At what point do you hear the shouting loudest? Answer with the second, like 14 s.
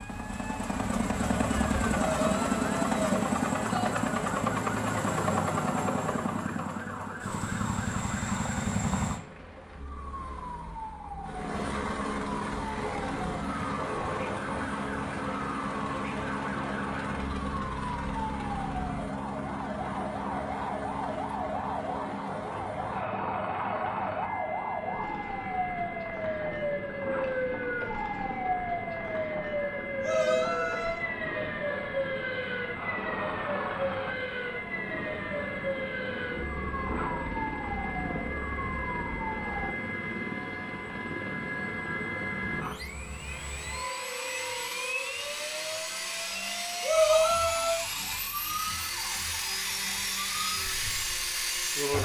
47 s.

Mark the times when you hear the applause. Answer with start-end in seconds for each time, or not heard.
not heard.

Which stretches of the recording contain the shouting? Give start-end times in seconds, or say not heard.
1.9-3.9, 30.0-31.1, 46.8-47.8.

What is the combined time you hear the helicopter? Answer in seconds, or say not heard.
52 s.